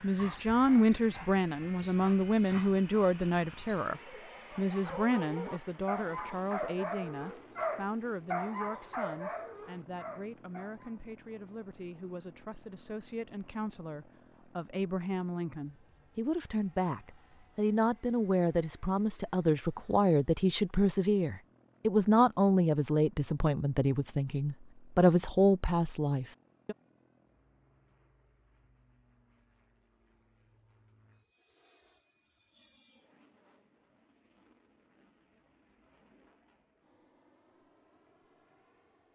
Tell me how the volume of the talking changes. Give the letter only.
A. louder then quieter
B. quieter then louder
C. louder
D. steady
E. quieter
B.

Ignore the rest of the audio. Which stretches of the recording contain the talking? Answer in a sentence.
You can hear the talking from 0.0 to 26.8 s.